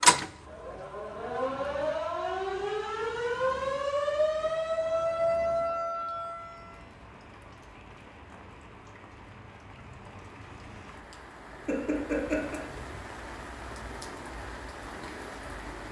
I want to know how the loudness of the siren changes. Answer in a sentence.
The loudness of the siren goes up.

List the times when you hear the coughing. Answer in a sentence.
You can hear the coughing from 11.7 to 12.6 s.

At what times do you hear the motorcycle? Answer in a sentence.
You can't hear the motorcycle here.